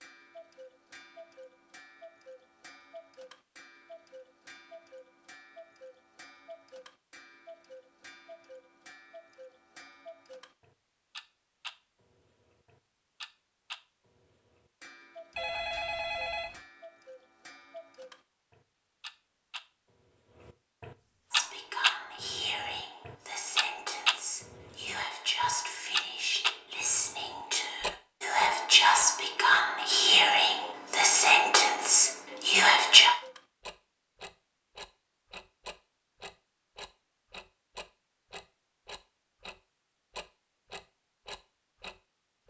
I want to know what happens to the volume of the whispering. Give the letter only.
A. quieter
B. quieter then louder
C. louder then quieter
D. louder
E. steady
D.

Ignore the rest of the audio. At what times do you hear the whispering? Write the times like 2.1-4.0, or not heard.
21.3-33.1.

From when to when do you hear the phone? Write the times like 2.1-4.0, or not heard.
15.3-16.6.